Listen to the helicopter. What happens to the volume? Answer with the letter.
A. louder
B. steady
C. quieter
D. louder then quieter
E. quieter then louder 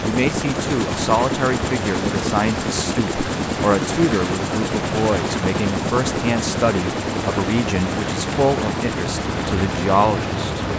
B.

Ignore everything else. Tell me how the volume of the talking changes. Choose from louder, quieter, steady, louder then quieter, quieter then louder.
steady.